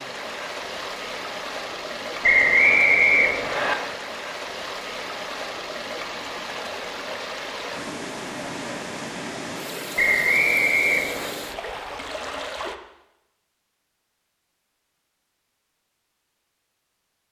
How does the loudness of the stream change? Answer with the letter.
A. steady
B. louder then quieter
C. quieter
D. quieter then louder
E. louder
A.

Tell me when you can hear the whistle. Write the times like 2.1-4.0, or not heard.
2.2-3.8, 9.9-11.3.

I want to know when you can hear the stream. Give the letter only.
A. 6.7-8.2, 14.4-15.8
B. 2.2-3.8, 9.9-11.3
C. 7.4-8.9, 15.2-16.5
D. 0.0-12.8
D.